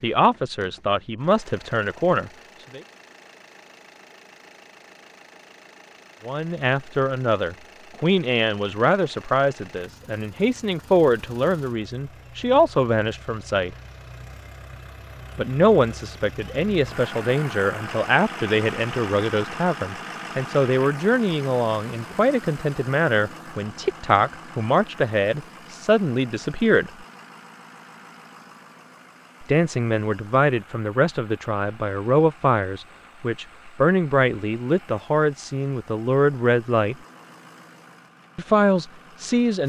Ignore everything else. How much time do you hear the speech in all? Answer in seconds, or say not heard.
31 s.